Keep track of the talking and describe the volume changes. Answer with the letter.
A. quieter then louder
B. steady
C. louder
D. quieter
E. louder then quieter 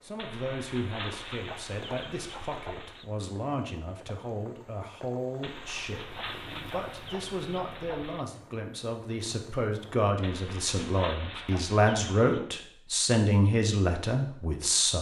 C.